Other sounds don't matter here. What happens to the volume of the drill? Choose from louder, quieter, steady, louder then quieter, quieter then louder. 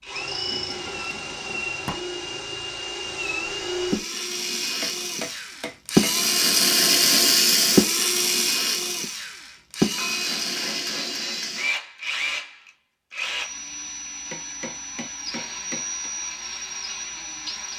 louder then quieter.